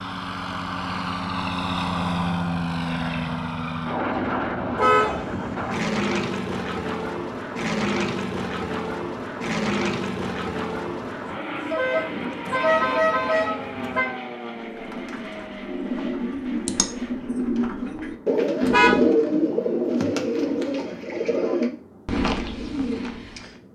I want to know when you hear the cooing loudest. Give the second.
19 s.